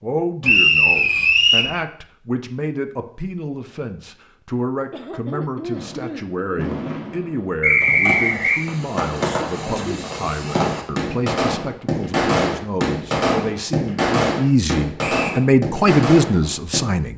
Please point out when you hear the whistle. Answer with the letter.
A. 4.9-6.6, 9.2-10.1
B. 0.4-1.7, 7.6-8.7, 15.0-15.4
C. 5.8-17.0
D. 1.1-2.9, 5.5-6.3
B.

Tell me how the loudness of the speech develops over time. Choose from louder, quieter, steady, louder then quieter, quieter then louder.
louder.